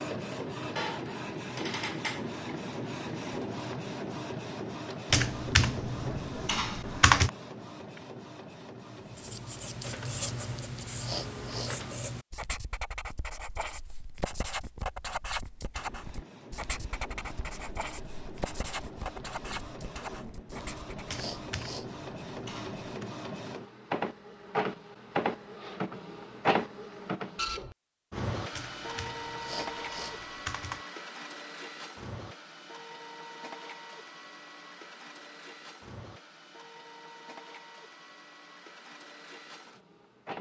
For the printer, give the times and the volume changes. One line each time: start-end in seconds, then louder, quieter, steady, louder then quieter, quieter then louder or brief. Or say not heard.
0.0-12.1 quieter
15.7-40.3 louder then quieter.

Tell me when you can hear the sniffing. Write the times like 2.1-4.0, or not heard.
11.0-11.8, 21.1-21.9, 29.4-30.2.